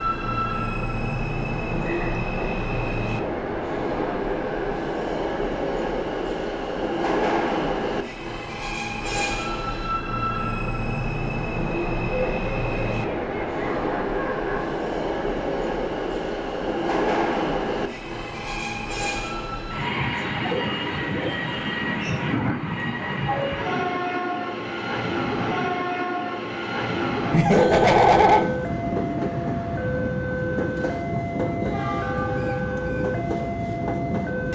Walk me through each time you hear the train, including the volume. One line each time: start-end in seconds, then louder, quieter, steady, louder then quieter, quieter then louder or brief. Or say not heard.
0.0-34.5 steady.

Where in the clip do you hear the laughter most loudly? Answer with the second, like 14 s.
28 s.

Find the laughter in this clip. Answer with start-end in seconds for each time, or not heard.
1.8-2.2, 12.0-14.7, 27.3-28.4.